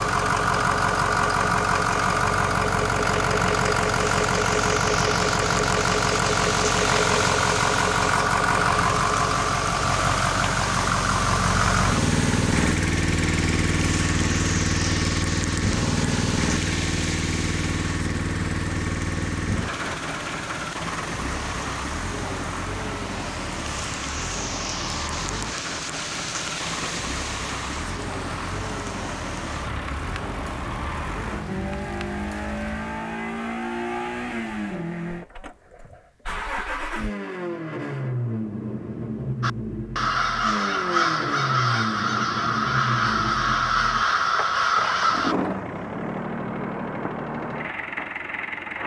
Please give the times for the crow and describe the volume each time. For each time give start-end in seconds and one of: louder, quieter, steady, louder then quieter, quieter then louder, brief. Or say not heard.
39.4-45.4 steady.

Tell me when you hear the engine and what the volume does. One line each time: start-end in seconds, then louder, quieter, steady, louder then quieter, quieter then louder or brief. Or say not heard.
0.0-48.8 quieter.